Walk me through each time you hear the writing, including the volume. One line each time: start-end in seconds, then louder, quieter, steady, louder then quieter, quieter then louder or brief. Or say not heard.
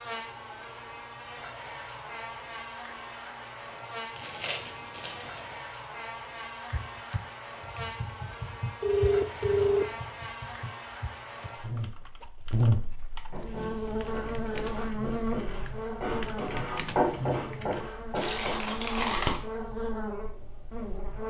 13.3-18.8 louder then quieter.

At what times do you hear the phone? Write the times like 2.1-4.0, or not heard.
8.8-10.0.